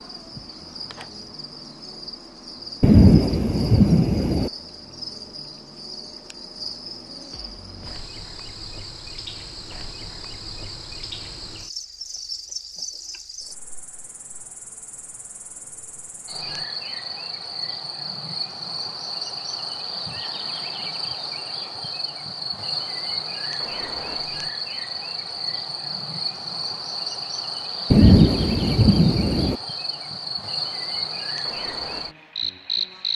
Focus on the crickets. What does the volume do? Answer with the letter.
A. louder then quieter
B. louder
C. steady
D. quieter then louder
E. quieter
B.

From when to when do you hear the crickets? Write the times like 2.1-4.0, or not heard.
0.0-33.1.